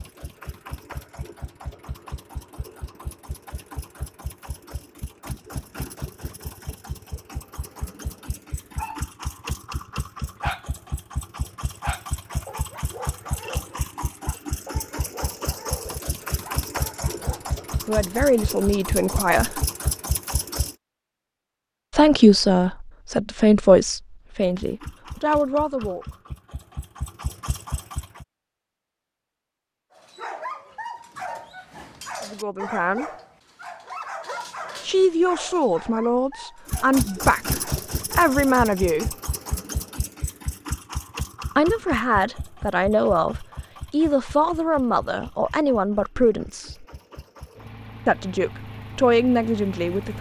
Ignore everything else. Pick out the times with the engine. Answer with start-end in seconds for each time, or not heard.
0.0-20.8, 24.4-28.2, 36.6-50.1.